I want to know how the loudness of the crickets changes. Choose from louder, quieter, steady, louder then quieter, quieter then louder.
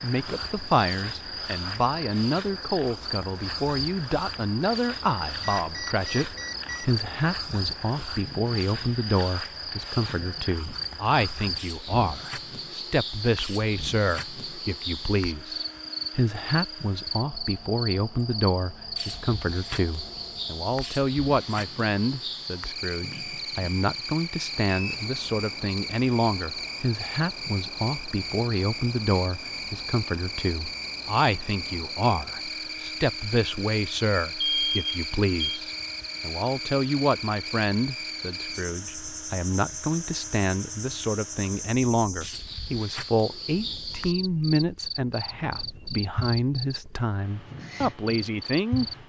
steady.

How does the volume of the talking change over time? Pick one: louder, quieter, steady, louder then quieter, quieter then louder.
steady.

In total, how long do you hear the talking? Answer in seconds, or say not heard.
49 s.